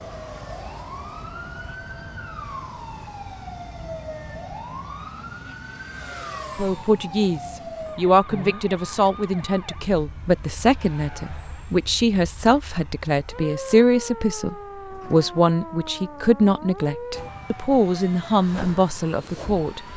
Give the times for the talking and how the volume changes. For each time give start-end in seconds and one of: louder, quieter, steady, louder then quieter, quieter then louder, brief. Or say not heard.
6.5-19.9 steady.